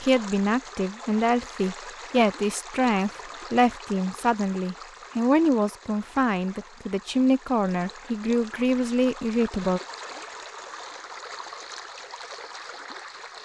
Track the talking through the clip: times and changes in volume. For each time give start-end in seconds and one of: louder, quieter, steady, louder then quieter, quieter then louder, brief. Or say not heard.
0.0-9.8 steady.